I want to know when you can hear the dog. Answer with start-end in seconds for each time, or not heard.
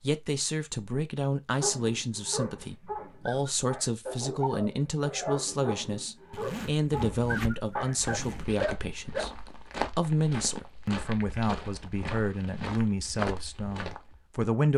1.6-9.2.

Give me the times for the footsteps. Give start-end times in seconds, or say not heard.
8.0-14.2.